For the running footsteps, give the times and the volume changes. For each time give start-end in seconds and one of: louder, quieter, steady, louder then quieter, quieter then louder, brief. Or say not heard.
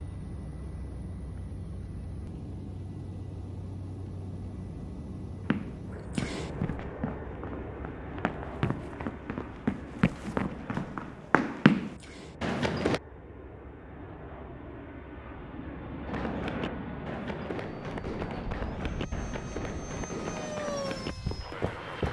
5.5-13.0 quieter then louder
16.1-22.0 steady.